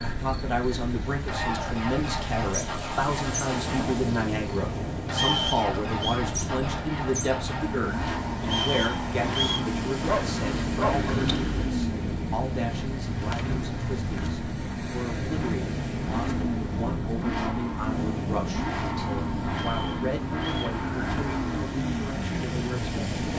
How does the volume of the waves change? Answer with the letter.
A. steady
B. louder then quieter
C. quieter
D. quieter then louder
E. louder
A.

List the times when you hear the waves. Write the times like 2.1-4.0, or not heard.
0.0-23.3.